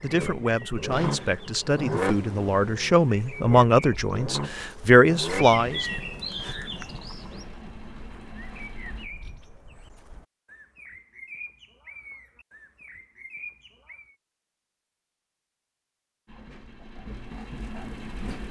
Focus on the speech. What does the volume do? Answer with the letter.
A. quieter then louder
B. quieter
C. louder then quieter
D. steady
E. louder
E.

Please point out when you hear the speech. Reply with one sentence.
The speech can be heard from 0.0 to 5.8 s.